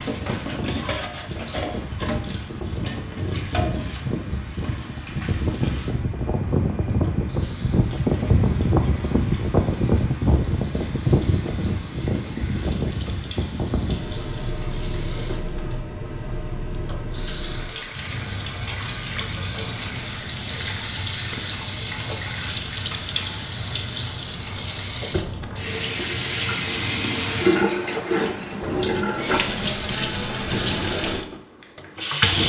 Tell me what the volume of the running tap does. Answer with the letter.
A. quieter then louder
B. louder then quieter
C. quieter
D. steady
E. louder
A.